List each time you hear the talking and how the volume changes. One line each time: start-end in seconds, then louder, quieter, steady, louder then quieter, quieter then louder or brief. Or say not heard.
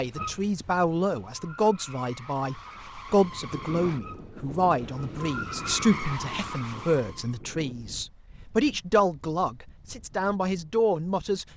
0.0-11.4 steady.